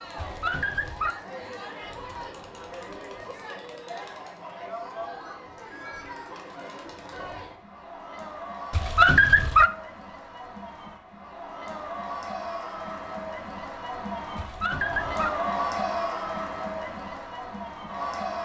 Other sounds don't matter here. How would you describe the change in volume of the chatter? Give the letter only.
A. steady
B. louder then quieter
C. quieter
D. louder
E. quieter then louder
D.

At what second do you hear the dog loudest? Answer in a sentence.
The loudest moment of the dog is at 9 seconds.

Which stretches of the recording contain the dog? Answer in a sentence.
The dog can be heard from 0.1 to 1.1 s, from 8.7 to 9.7 s and from 14.3 to 15.3 s.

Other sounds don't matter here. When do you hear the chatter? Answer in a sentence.
You can hear the chatter from 0.0 to 18.4 s.